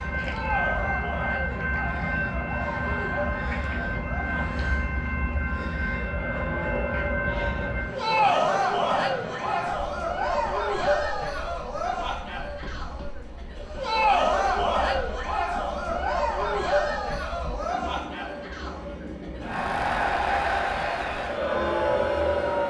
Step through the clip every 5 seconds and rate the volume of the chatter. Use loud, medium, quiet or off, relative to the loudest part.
medium, loud, loud, loud, loud.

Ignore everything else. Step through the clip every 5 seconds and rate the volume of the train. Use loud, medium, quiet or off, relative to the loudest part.
loud, loud, quiet, medium, medium.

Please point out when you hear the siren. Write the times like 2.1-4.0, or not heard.
not heard.